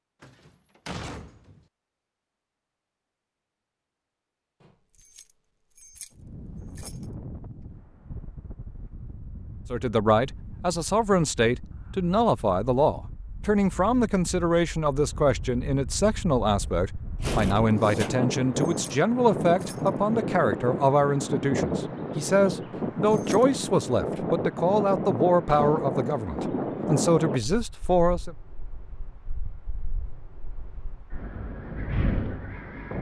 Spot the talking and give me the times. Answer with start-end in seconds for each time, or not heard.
9.7-28.4.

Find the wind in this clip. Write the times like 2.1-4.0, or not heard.
6.1-32.9.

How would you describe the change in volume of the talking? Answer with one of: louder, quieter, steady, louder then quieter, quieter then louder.
steady.